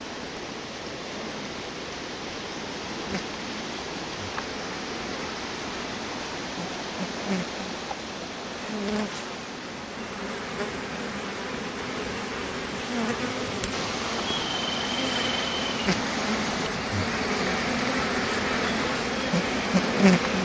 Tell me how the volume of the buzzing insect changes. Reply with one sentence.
The volume of the buzzing insect goes up.